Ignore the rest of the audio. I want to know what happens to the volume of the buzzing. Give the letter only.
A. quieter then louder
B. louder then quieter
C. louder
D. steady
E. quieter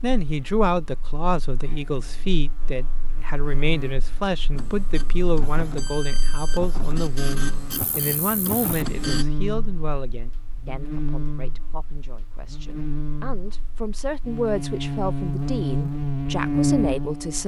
C.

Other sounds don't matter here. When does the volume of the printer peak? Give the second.
9 s.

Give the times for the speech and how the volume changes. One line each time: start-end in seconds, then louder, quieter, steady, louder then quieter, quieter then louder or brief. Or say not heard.
0.0-17.4 quieter then louder.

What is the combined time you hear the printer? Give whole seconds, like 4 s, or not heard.
5 s.